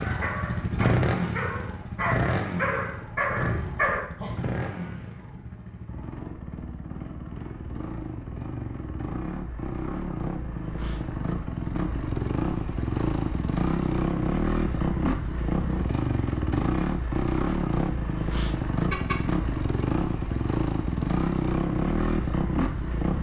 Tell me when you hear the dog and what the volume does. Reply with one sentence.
You can hear the dog from 0.0 to 4.3 s, getting louder.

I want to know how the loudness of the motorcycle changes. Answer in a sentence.
The loudness of the motorcycle goes down, then up.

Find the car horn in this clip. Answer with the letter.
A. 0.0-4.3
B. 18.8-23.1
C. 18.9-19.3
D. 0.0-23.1
C.